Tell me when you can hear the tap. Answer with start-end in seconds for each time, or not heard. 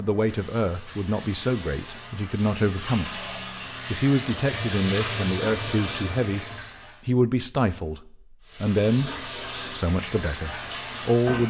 0.0-7.0, 8.4-11.4.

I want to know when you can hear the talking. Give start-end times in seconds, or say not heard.
0.0-3.2, 3.9-6.5, 7.0-11.4.